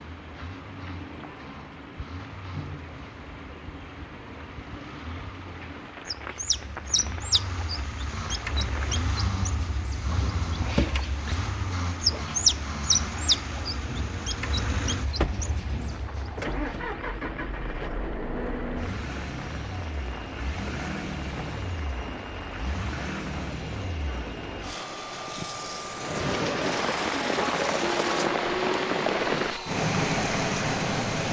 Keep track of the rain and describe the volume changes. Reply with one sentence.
The volume of the rain goes up.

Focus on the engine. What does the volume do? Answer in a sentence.
The loudness of the engine goes up.